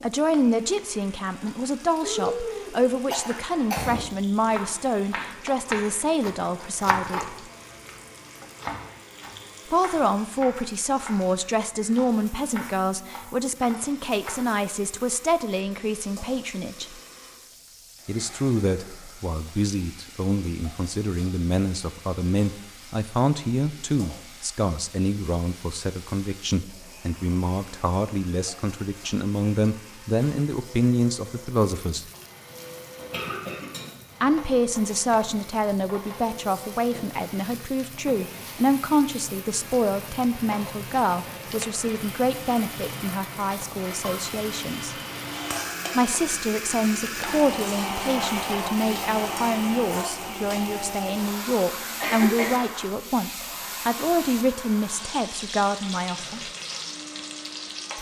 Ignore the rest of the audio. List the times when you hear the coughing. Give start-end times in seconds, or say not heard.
2.0-4.0, 33.0-33.9, 52.0-52.6.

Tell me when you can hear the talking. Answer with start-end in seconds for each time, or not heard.
0.0-7.3, 9.7-16.9, 18.1-32.0, 34.2-45.0, 46.0-56.5.